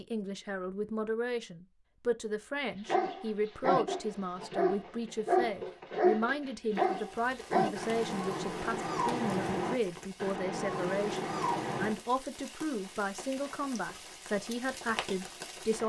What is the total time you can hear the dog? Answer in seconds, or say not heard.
9 s.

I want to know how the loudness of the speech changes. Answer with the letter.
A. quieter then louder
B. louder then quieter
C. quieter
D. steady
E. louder
D.